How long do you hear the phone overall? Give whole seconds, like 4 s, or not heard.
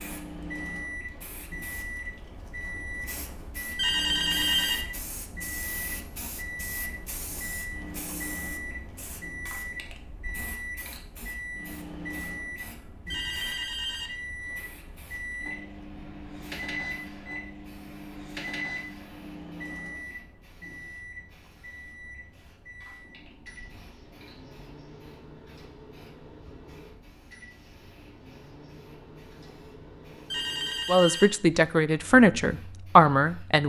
3 s.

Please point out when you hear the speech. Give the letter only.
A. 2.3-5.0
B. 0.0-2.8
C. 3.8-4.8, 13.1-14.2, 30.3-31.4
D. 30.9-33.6
D.